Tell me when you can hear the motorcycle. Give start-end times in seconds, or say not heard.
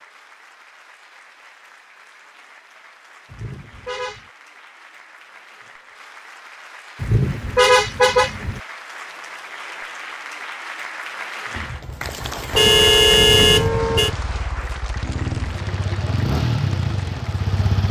11.5-17.8.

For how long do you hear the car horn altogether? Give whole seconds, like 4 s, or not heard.
4 s.